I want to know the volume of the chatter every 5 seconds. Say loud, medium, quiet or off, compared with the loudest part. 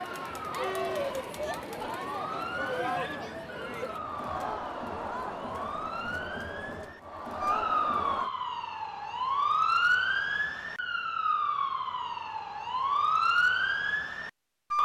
loud, loud, off.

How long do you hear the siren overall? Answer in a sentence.
The siren can be heard for 15 seconds in total.